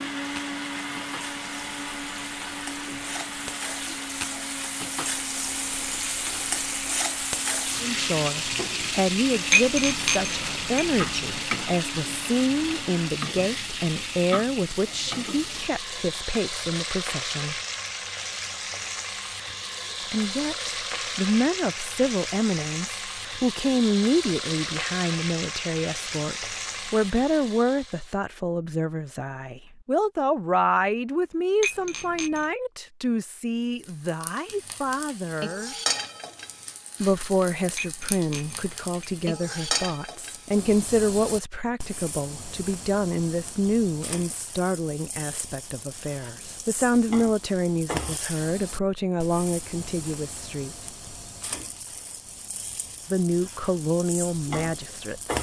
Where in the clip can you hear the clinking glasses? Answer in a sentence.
You can hear the clinking glasses from 9.5 to 11.4 s, from 31.6 to 32.5 s and from 37.8 to 39.8 s.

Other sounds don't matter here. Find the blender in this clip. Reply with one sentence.
The blender can be heard from 0.0 to 13.2 s.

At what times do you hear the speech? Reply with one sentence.
The speech can be heard from 7.8 to 17.6 s, from 20.1 to 35.8 s, from 37.0 to 50.8 s and from 53.1 to 55.3 s.